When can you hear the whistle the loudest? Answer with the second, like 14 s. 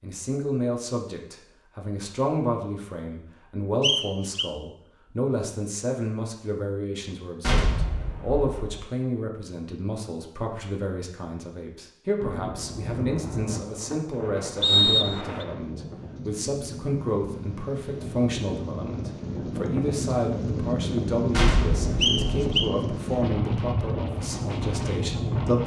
15 s.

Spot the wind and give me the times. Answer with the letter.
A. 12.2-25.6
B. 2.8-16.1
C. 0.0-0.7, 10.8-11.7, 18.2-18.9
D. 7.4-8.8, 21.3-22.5
A.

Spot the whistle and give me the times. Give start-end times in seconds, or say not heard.
3.8-4.5, 14.6-15.4, 22.0-22.7.